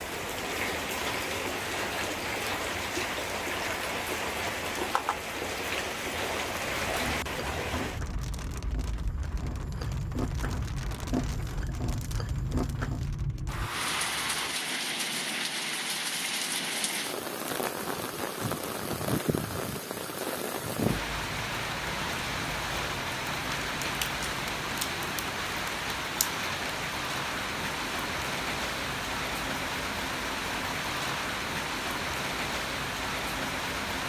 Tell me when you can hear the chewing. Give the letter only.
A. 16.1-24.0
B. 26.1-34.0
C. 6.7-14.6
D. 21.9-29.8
C.